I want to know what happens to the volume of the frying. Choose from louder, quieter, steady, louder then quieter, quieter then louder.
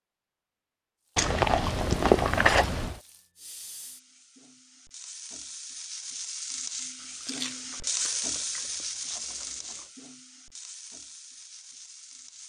louder then quieter.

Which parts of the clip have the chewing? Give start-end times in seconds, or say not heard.
1.1-3.0, 7.0-9.8.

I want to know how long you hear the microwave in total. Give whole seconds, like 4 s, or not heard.
not heard.